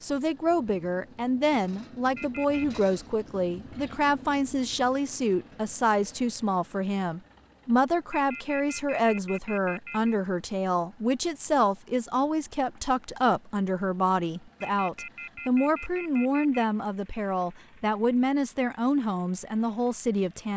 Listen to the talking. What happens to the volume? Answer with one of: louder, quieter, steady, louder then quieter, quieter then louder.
steady.